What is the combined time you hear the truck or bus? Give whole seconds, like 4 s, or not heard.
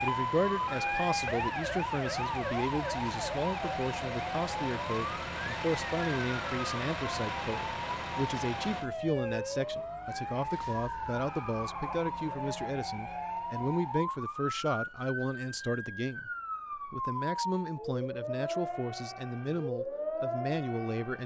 9 s.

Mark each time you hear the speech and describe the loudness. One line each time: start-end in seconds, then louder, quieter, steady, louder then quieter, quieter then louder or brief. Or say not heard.
0.0-21.2 steady.